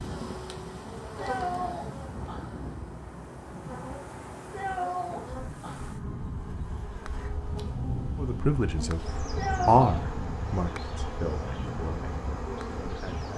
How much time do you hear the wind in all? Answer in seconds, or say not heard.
13 s.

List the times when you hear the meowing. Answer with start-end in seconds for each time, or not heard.
1.1-2.6, 4.5-6.0, 9.3-9.8.